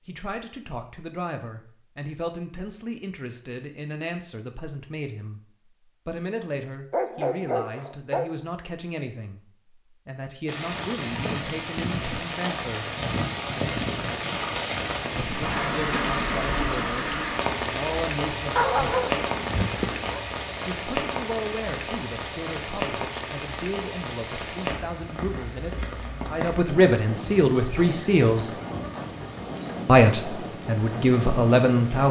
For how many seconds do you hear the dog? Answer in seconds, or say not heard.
3 s.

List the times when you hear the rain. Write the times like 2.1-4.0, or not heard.
10.4-32.0.